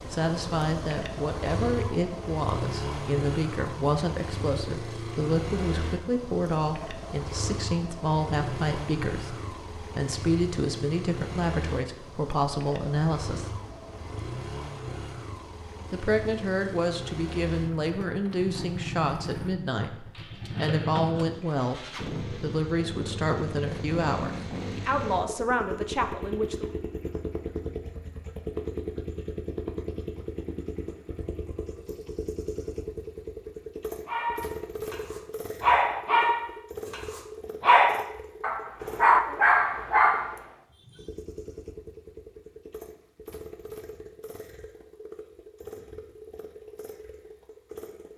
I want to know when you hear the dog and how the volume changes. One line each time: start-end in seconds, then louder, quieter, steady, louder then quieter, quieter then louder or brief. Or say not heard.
34.0-40.4 louder.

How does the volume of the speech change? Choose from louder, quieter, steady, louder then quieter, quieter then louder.
steady.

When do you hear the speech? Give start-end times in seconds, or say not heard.
0.1-13.6, 15.9-26.7.